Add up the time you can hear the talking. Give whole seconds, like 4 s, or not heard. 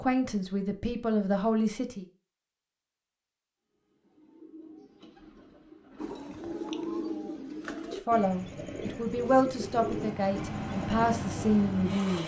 6 s.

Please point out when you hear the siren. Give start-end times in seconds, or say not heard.
not heard.